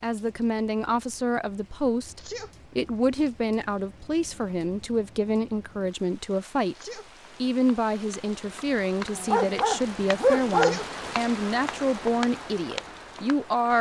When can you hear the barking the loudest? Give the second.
10 s.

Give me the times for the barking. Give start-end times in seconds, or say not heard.
9.2-10.8.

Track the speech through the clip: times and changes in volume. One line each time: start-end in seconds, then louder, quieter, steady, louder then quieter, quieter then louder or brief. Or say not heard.
0.0-13.7 steady.